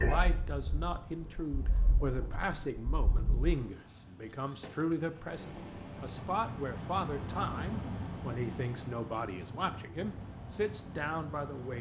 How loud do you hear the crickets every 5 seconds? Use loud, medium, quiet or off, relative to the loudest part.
loud, medium, off.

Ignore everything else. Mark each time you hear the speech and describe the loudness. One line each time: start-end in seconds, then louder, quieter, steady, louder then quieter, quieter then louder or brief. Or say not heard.
0.0-11.7 steady.